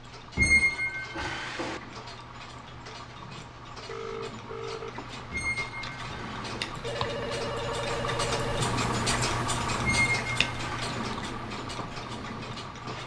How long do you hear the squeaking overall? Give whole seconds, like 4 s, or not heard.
4 s.